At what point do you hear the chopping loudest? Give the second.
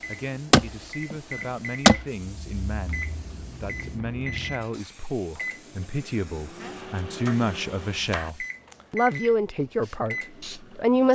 2 s.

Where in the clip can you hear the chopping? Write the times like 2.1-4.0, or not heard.
0.5-2.0, 6.6-8.3.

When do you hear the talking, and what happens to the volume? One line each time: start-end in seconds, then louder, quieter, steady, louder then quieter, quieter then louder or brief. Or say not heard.
0.1-11.1 louder.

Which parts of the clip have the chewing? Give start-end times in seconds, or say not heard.
2.2-4.7.